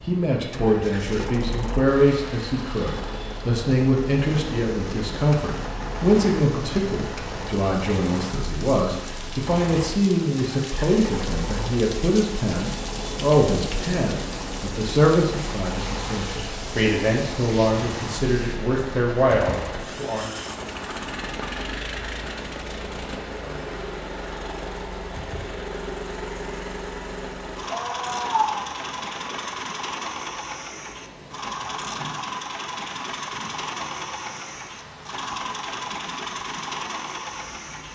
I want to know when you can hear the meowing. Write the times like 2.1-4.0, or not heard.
27.7-28.6.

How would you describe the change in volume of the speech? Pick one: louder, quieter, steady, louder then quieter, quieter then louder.
steady.